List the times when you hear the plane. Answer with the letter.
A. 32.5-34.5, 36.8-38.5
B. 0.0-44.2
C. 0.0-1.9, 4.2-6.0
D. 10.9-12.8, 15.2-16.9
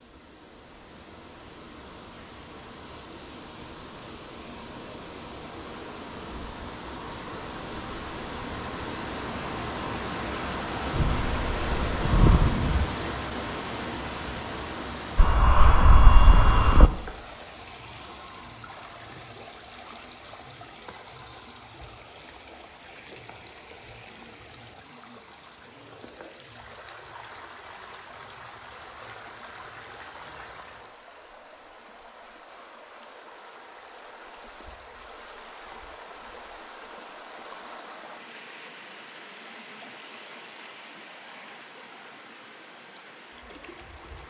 D.